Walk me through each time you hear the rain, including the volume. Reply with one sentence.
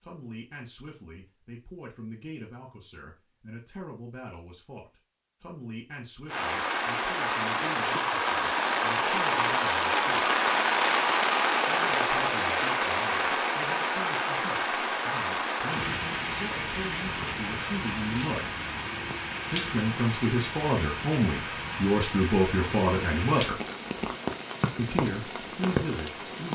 You can hear the rain from 6.2 to 26.5 s, getting quieter.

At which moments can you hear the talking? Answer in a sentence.
You can hear the talking from 0.0 to 10.3 s, from 11.7 to 18.5 s, from 19.5 to 23.6 s and from 24.8 to 26.5 s.